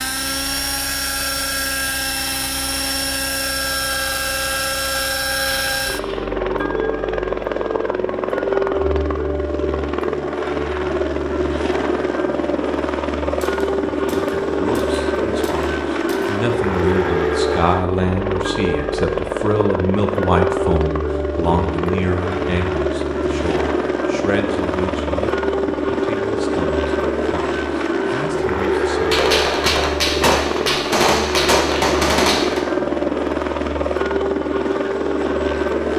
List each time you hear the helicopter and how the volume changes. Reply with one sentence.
You can hear the helicopter from 0.0 to 35.9 s, at a steady volume.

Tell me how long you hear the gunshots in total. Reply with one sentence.
The gunshots can be heard for 7 seconds in total.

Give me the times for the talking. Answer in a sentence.
You can hear the talking from 13.8 to 29.2 s.